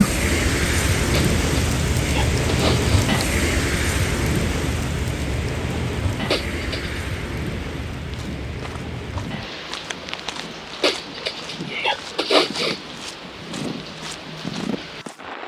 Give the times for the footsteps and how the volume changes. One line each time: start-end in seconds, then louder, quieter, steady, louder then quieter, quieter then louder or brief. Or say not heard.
8.1-15.2 louder.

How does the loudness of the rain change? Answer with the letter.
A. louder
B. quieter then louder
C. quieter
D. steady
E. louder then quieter
C.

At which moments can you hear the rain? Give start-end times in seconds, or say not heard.
0.0-15.4.